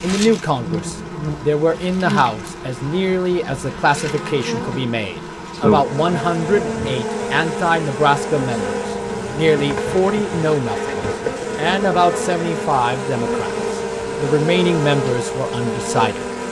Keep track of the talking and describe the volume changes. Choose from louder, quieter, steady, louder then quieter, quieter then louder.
steady.